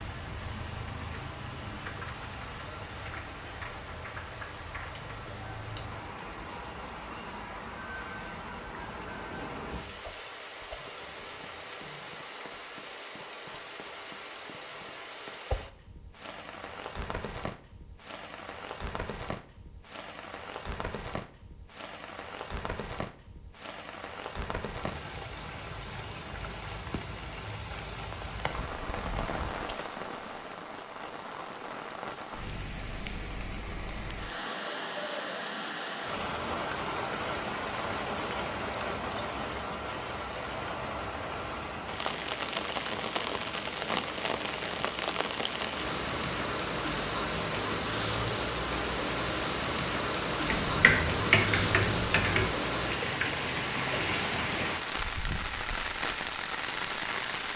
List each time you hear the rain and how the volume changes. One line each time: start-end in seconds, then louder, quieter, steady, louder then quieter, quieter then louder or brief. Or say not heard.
0.0-57.5 louder.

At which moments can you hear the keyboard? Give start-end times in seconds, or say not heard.
50.5-52.5.